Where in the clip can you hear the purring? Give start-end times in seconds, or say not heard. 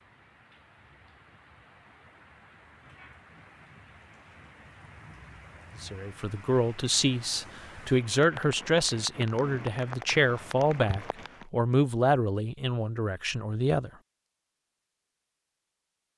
not heard.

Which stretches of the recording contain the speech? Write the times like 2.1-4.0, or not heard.
5.8-13.9.